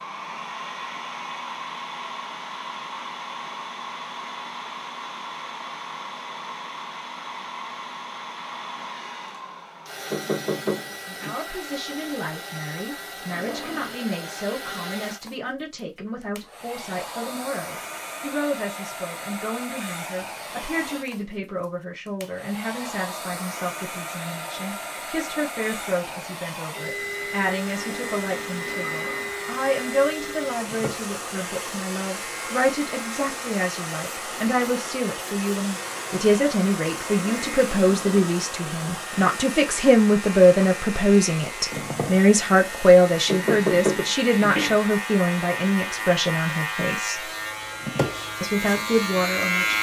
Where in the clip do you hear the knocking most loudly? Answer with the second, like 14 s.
44 s.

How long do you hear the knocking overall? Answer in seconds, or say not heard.
3 s.